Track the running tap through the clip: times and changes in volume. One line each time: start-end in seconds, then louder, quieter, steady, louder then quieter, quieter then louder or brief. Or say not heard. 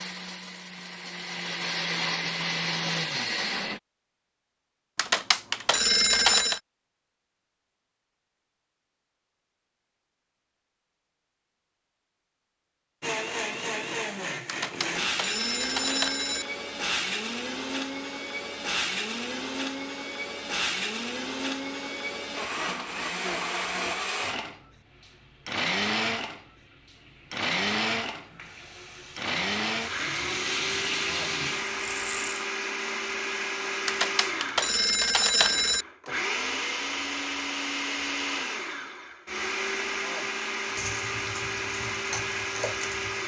24.7-32.5 louder
40.6-43.2 brief.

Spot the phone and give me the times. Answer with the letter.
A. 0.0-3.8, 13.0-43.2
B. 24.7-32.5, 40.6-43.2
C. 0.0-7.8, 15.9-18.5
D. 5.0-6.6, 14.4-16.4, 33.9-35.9
D.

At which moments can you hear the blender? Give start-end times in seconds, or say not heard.
0.0-3.8, 13.0-43.2.